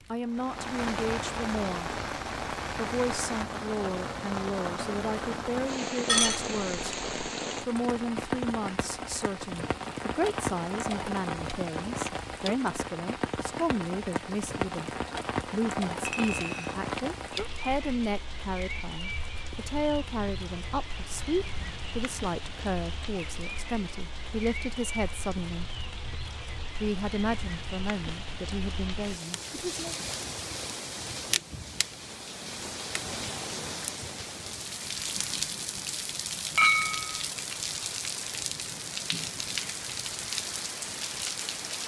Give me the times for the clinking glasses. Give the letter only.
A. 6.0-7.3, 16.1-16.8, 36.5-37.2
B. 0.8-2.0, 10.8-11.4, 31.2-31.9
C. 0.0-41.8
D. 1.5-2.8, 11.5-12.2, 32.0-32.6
A.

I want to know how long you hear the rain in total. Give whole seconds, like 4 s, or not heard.
42 s.